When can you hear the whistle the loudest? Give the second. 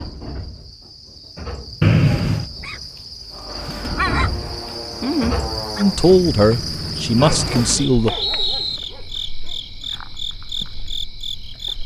2 s.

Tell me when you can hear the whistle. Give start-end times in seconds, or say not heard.
1.8-2.5, 7.2-8.8.